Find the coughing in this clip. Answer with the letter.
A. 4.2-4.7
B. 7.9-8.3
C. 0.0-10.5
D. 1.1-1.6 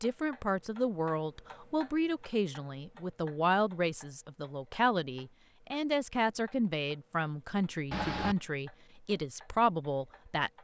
B.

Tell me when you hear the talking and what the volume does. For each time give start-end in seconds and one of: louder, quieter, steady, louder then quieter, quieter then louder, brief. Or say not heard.
0.0-10.5 steady.